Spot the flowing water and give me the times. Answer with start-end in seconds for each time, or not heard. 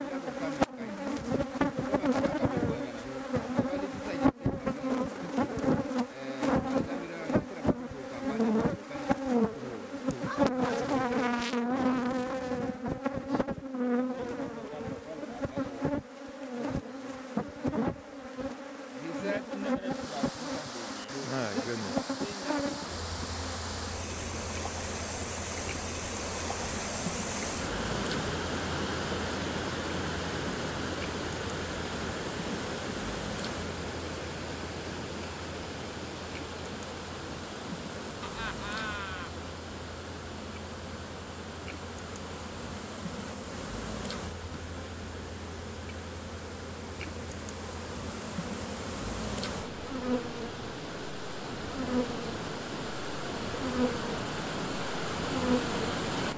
19.9-56.3.